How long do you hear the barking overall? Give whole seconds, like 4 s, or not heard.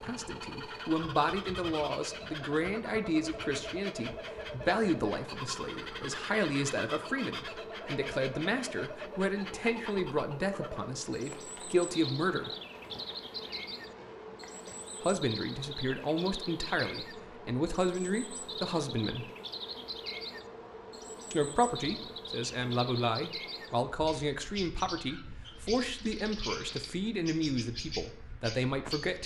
not heard.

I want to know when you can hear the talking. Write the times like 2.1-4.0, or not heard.
0.0-12.5, 15.0-19.3, 21.3-29.2.